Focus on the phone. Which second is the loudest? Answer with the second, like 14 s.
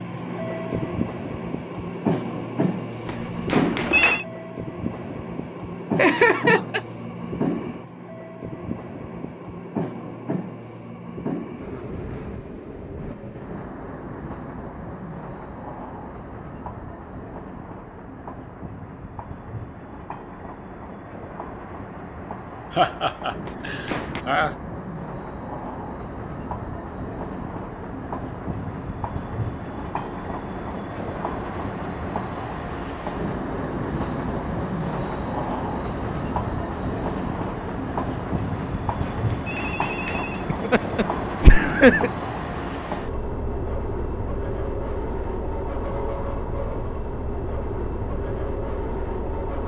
4 s.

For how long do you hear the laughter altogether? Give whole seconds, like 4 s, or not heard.
4 s.